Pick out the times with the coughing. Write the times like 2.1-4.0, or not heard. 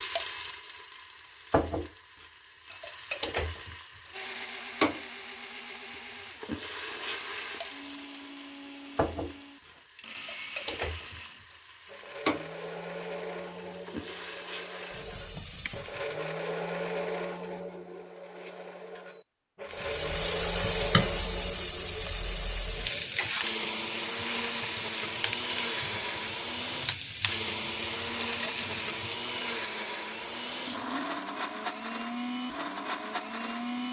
not heard.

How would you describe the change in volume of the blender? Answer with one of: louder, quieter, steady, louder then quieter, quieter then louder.
louder.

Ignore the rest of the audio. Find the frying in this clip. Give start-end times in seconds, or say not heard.
0.0-16.2, 19.7-33.8.